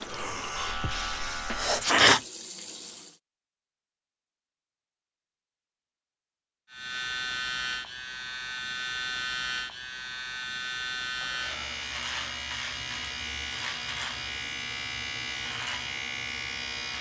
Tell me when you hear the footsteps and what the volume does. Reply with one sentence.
You can't hear the footsteps here.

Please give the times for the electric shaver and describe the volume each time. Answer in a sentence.
You can hear the electric shaver briefly from 0.0 to 1.8 s; and from 6.7 to 16.9 s, at a steady volume.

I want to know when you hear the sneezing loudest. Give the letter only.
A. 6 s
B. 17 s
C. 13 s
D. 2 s
D.